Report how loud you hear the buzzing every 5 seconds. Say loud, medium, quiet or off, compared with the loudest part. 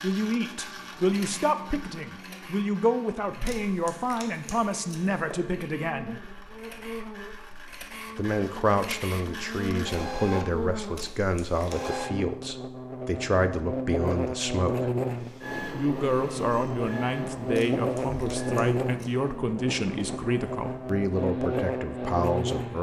quiet, medium, loud, loud, loud.